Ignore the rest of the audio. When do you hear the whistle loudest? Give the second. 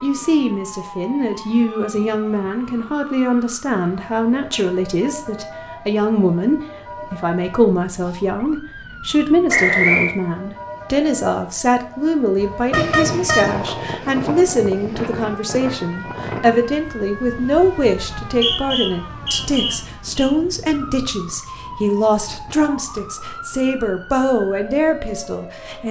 10 s.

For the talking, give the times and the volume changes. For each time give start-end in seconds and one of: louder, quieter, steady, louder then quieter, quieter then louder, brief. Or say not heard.
0.0-25.8 steady.